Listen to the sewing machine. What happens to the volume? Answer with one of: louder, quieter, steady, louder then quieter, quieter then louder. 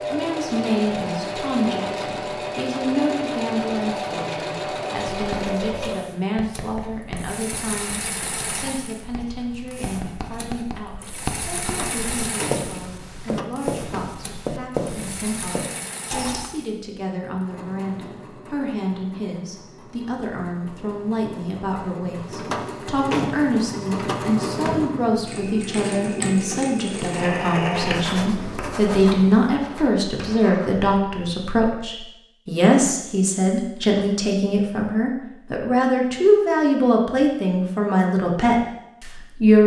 quieter then louder.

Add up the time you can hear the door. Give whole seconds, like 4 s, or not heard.
5 s.